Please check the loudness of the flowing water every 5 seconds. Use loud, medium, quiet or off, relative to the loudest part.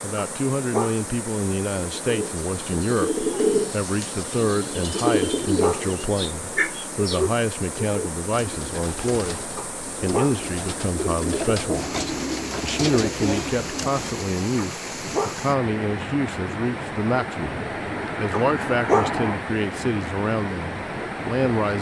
medium, medium, loud, loud, loud.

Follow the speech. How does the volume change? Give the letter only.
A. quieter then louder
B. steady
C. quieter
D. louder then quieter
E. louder
B.